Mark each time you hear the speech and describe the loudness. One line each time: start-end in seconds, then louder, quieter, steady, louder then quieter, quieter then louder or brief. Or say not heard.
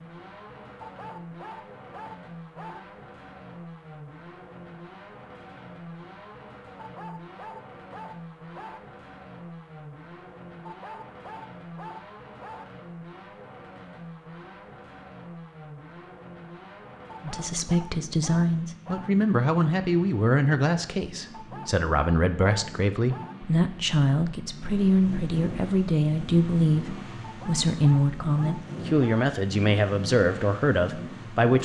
17.2-31.6 steady.